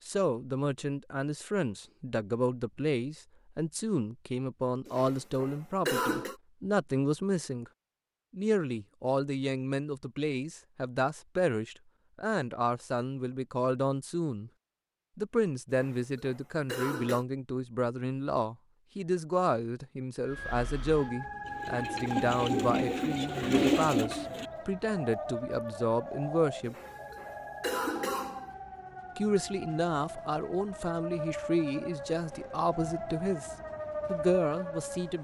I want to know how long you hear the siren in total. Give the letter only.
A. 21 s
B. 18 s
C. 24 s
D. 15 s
D.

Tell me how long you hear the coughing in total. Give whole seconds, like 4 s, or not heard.
5 s.